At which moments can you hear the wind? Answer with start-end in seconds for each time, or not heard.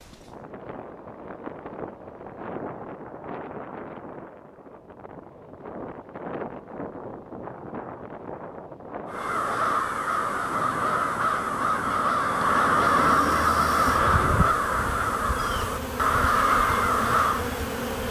0.0-9.9.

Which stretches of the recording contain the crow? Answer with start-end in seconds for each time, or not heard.
9.1-17.5.